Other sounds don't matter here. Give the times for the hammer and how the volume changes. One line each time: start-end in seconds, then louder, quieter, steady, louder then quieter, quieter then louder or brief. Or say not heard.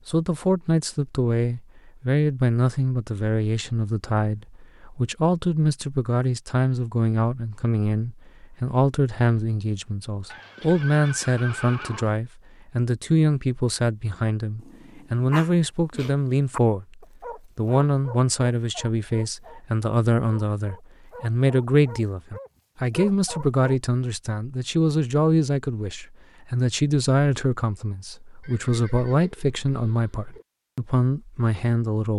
not heard.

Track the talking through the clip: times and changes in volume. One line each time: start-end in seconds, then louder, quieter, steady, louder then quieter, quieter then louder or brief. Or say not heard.
0.1-32.1 steady.